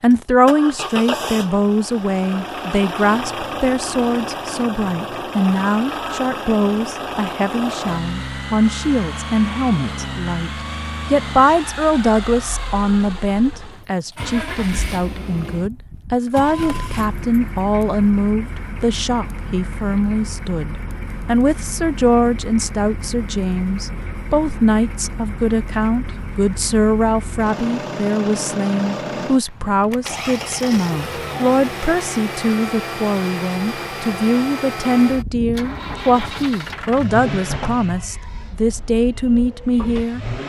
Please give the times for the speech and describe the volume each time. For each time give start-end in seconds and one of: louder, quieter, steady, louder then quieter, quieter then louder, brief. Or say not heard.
0.0-40.2 steady.